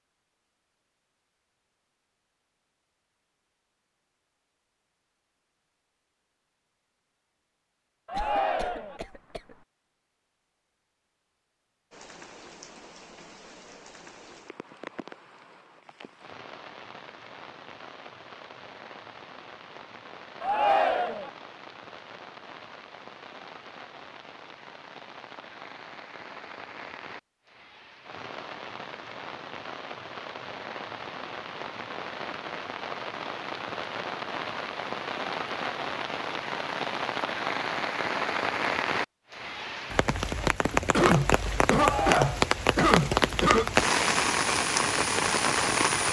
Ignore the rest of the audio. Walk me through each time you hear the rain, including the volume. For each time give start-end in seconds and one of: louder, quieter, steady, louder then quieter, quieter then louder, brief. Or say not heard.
11.9-46.0 louder.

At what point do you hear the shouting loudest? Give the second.
21 s.